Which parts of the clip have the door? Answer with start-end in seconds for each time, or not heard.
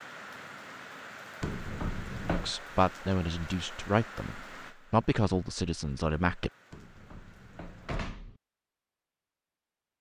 1.4-2.5, 6.7-8.4.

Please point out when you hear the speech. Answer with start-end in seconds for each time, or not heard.
2.4-6.5.